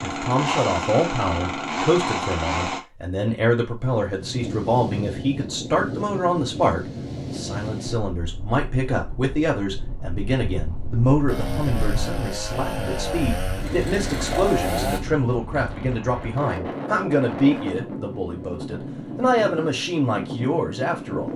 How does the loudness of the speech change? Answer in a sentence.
The volume of the speech stays about the same.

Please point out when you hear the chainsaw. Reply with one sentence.
You can hear the chainsaw from 0.0 to 2.8 s and from 11.2 to 15.0 s.